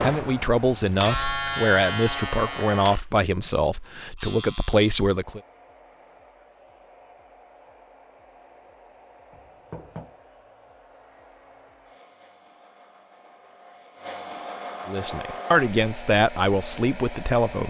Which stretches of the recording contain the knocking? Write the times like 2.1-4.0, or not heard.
9.3-10.2.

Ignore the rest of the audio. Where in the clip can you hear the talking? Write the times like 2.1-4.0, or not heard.
0.0-5.4, 14.8-17.6.